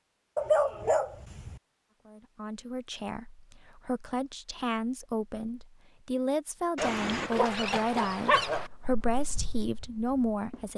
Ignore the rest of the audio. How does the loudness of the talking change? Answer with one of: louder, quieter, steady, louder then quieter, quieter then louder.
louder.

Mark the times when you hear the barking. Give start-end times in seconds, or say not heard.
0.3-1.6, 6.8-8.7.